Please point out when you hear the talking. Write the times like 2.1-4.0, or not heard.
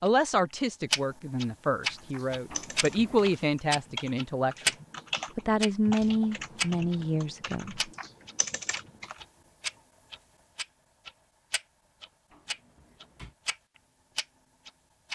0.0-4.7, 5.3-7.8.